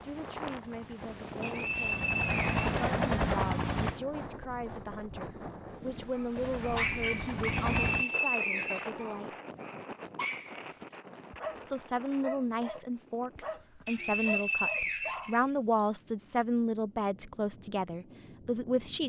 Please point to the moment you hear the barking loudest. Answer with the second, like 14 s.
7 s.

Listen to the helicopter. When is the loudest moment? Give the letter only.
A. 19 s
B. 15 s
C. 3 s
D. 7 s
C.